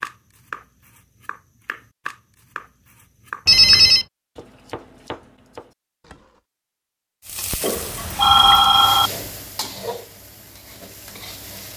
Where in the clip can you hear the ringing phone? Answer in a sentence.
You can hear the ringing phone from 3.5 to 4.0 s and from 7.6 to 9.1 s.